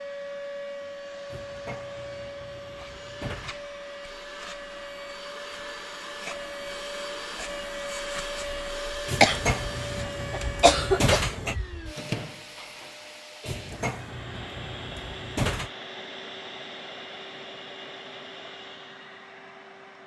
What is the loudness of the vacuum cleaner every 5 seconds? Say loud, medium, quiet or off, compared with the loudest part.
loud, loud, loud, medium.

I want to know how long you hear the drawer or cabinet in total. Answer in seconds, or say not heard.
7 s.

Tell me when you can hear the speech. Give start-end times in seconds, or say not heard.
not heard.